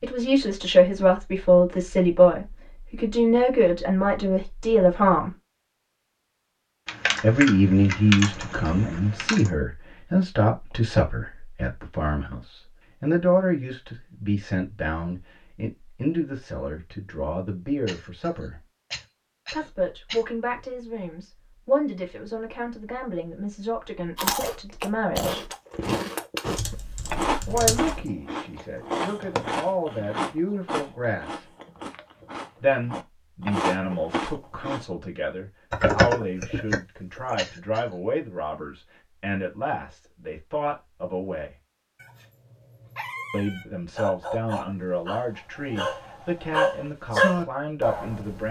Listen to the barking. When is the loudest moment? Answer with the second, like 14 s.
47 s.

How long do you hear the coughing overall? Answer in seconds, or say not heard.
3 s.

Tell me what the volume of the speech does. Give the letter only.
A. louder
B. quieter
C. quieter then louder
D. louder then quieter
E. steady
B.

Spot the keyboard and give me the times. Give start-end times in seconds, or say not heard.
6.8-9.5, 26.6-28.1, 35.7-37.4.